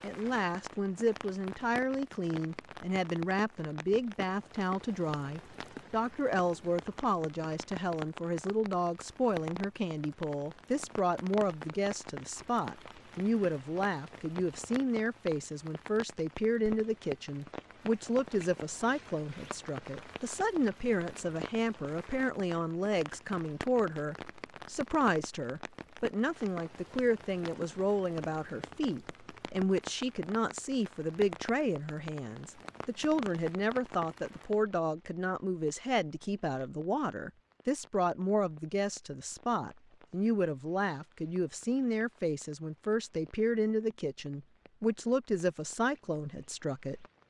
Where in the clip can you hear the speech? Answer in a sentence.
The speech can be heard from 0.0 to 47.2 s.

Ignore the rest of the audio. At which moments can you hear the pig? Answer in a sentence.
The pig can't be heard in this clip.